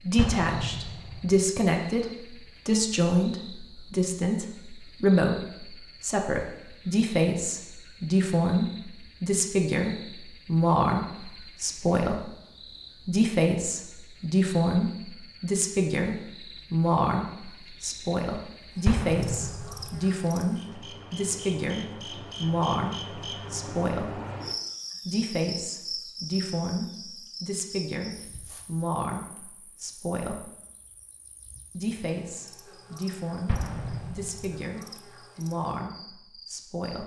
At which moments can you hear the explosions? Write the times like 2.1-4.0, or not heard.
0.1-1.4, 18.9-20.1, 33.5-34.6.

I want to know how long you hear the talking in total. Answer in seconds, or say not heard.
34 s.